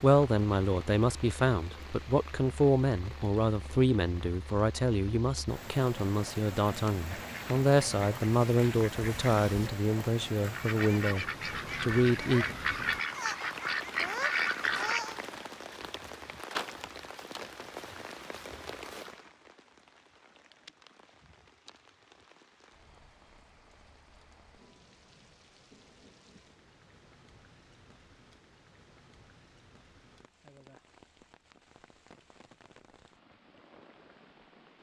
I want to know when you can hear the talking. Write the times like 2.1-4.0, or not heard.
0.0-12.4.